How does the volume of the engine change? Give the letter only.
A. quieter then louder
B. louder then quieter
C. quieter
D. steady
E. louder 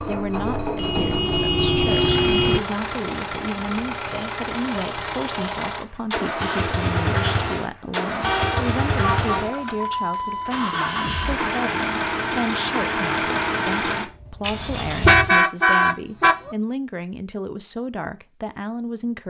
D.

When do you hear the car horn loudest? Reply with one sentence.
The loudest moment of the car horn is at 15 seconds.